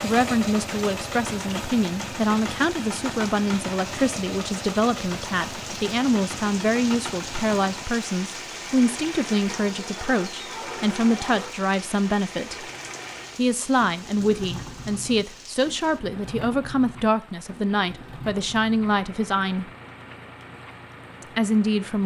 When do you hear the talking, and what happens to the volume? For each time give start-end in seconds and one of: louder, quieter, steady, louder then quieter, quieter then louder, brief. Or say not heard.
0.0-12.7 steady
13.3-19.7 steady
21.4-22.0 brief.